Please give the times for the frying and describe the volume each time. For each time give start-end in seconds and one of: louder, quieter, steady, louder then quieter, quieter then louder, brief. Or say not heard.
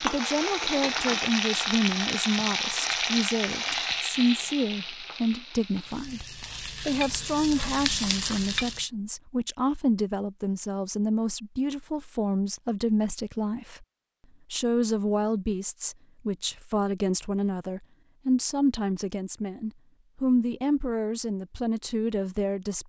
0.0-8.8 quieter then louder.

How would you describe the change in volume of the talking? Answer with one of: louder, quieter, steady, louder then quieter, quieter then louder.
steady.